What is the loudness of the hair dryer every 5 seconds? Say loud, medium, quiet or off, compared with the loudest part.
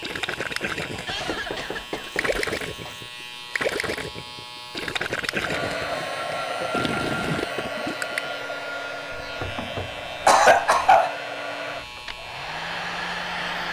off, loud, loud.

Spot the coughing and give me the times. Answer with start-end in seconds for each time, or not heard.
0.9-3.0, 6.4-6.9, 10.2-11.2.